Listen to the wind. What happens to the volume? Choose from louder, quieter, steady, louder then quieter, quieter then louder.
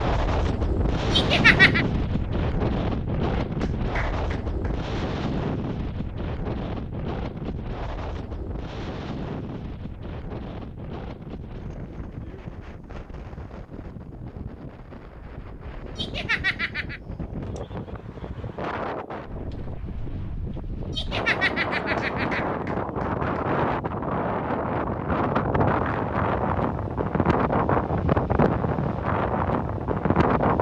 quieter then louder.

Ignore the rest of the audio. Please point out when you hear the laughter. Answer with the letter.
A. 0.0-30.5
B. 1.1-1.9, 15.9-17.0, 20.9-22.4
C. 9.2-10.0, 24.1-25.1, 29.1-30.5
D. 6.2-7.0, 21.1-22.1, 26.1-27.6
B.